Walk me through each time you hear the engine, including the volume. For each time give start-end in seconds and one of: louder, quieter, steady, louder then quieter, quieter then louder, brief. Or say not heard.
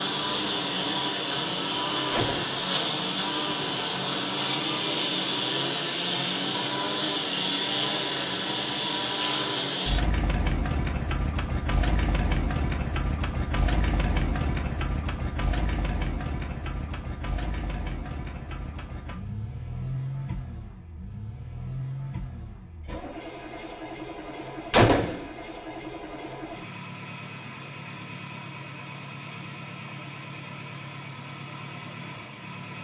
0.0-32.7 quieter.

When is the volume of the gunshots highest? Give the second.
25 s.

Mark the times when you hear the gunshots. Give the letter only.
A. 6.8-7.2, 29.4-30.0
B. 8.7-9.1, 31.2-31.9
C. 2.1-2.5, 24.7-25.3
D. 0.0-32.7
C.